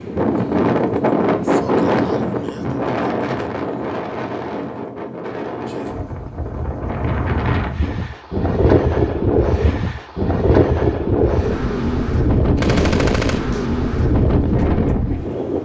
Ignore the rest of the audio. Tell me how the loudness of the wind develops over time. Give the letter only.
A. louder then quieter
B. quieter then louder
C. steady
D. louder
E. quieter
B.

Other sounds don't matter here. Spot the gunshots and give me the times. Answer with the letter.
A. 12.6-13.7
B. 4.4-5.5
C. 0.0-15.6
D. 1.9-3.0
A.